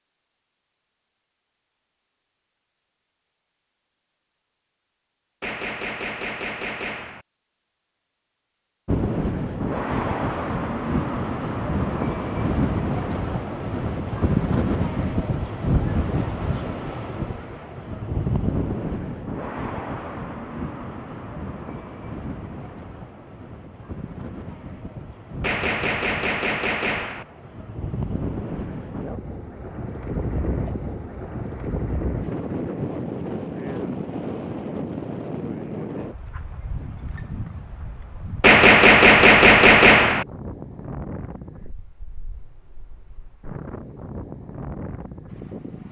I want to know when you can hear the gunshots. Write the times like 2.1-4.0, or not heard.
5.4-7.2, 25.4-27.2, 38.4-40.2.